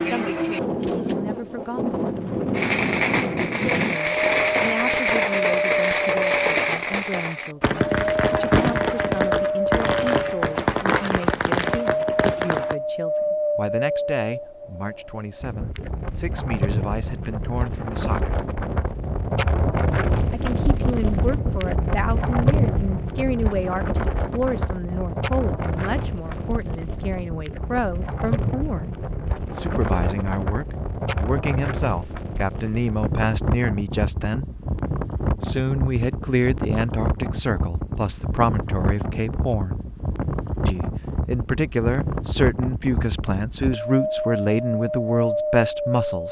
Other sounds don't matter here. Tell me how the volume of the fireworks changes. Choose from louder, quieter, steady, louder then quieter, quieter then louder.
steady.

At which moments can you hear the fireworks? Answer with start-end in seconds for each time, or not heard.
2.5-12.8.